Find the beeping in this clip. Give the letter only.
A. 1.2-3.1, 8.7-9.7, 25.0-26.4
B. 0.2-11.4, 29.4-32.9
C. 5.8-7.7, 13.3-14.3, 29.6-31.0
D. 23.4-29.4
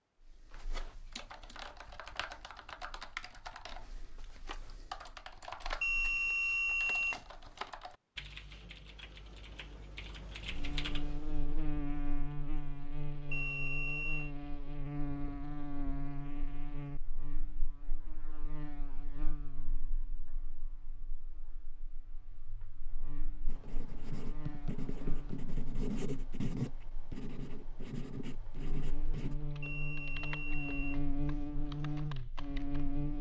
C.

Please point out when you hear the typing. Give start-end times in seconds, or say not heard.
0.2-11.4, 29.4-32.9.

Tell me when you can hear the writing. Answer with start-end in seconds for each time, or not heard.
23.4-29.4.